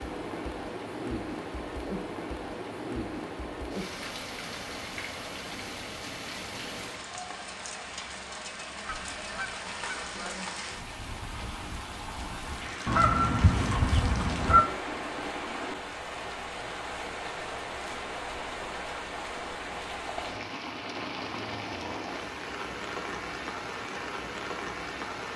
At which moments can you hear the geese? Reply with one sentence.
You can hear the geese from 8.8 to 10.2 s and from 12.8 to 14.7 s.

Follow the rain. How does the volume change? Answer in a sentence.
The volume of the rain stays about the same.